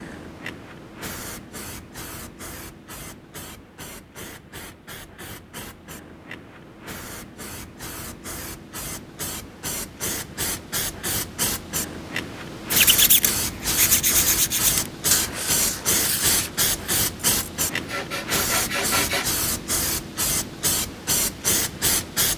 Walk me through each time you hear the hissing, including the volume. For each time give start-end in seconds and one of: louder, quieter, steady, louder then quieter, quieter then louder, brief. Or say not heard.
0.0-22.3 louder.